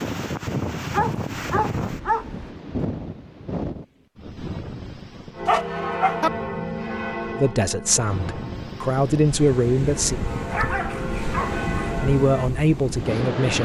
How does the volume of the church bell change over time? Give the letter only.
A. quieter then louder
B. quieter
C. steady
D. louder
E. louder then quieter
A.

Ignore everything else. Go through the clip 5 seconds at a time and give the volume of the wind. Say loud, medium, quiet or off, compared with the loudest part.
loud, medium, loud.